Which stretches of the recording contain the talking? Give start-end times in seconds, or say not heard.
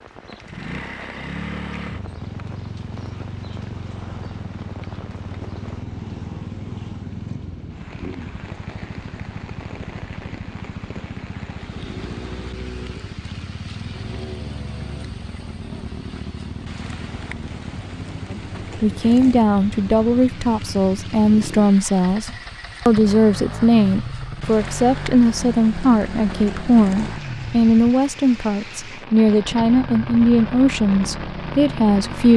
18.3-32.3.